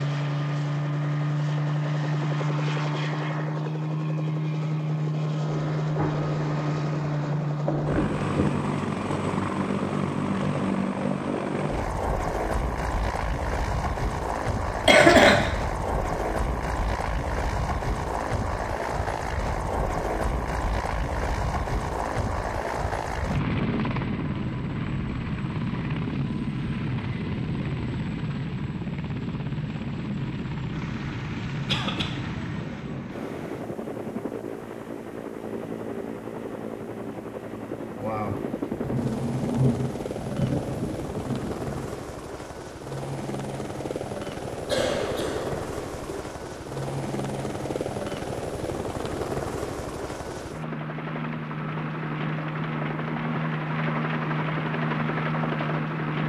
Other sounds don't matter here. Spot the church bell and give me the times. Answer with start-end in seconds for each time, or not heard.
not heard.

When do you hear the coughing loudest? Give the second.
15 s.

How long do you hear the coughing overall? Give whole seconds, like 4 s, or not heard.
3 s.